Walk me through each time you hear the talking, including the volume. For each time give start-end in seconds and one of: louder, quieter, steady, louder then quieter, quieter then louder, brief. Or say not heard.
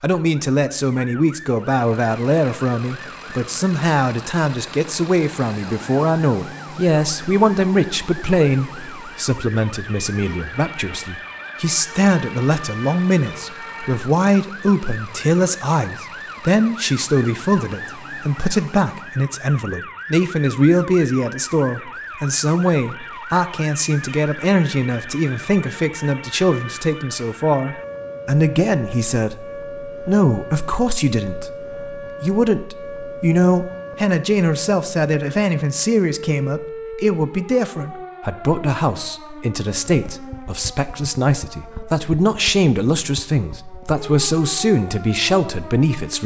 0.0-46.2 steady.